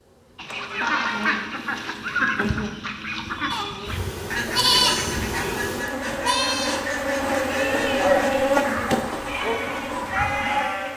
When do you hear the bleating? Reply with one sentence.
The bleating can be heard from 3.5 to 10.9 s.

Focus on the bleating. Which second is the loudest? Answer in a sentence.
The volume of the bleating peaks at 5 seconds.